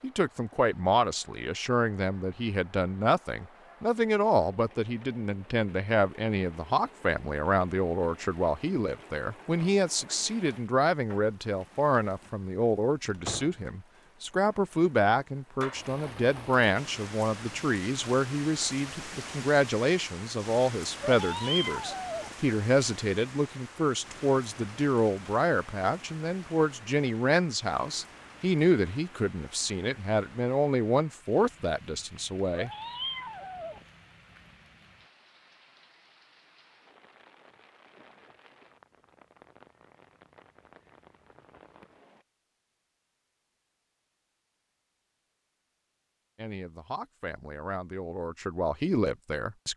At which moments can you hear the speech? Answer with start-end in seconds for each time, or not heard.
0.0-32.7, 46.4-49.7.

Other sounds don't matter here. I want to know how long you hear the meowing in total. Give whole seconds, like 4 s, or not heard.
3 s.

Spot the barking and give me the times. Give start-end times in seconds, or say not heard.
not heard.